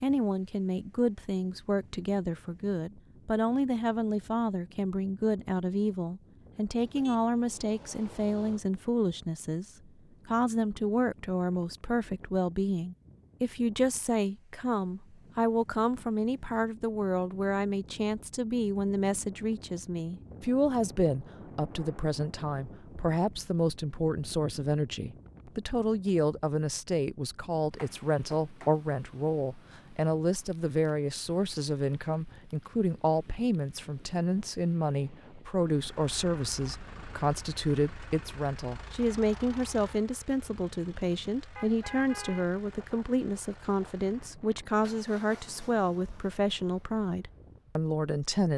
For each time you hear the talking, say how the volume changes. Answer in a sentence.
The talking can be heard from 0.0 to 48.5 s, at a steady volume.